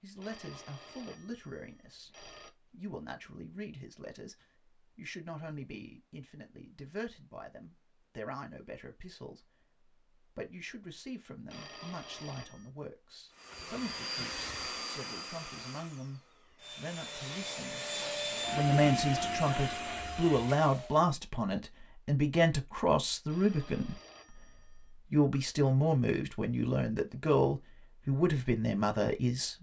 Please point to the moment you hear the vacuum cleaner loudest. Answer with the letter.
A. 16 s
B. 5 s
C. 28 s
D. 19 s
D.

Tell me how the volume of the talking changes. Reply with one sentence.
The loudness of the talking goes up.